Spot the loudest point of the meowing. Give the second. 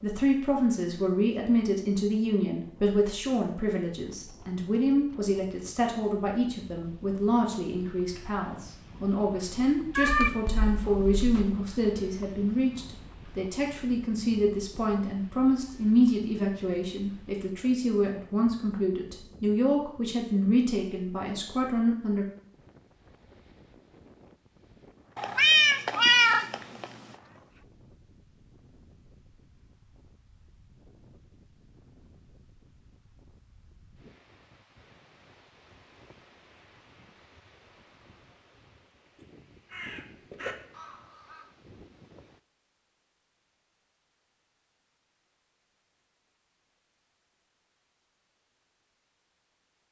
26 s.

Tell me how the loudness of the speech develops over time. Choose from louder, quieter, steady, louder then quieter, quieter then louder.
steady.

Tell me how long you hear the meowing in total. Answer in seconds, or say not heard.
3 s.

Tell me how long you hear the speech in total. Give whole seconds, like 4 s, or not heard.
22 s.